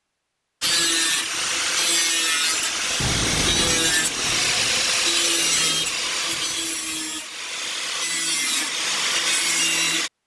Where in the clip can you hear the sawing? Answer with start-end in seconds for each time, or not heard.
0.6-10.1.